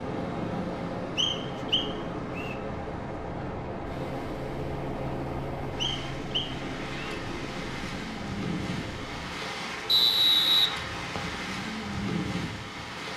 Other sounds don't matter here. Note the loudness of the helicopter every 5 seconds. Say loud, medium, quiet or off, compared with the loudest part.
loud, loud, off.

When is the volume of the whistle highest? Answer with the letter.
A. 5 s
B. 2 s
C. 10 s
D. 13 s
C.